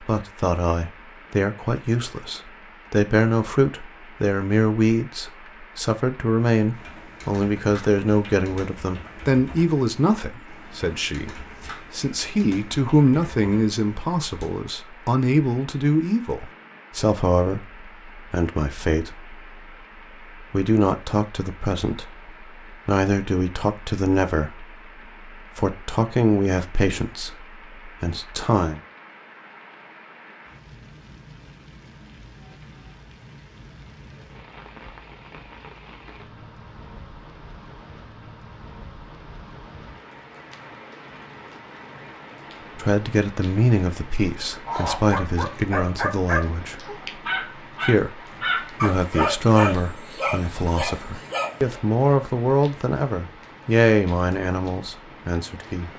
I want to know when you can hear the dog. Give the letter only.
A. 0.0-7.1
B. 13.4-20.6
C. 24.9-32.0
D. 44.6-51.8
D.